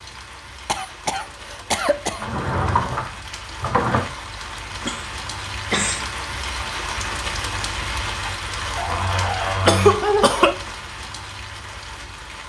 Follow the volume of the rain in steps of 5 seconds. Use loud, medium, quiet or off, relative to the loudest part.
medium, loud, medium.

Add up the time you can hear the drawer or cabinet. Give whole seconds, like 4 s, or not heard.
3 s.